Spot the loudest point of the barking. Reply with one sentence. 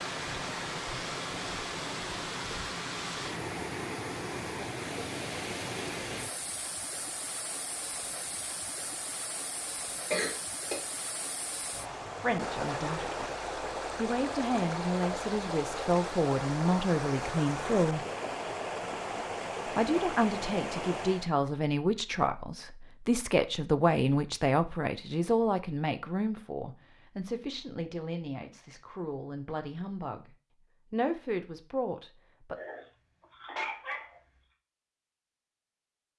The volume of the barking peaks at 34 seconds.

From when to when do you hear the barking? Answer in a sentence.
The barking can be heard from 32.5 to 34.2 s.